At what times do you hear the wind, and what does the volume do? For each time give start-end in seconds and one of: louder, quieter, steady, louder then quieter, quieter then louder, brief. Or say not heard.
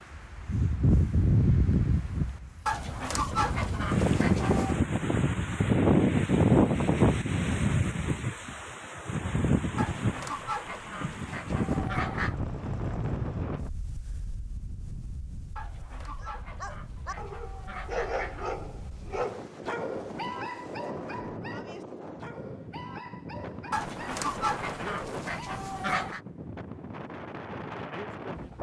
0.0-28.5 quieter.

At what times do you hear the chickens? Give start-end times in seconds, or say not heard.
2.6-4.8, 9.8-12.4, 15.6-18.6, 23.7-26.2.